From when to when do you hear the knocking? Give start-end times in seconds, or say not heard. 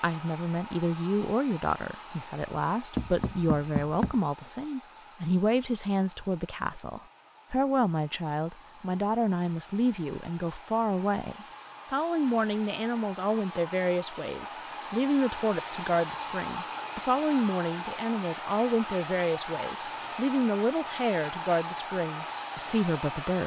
3.0-4.2.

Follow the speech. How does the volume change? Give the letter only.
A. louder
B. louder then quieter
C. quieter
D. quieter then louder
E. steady
E.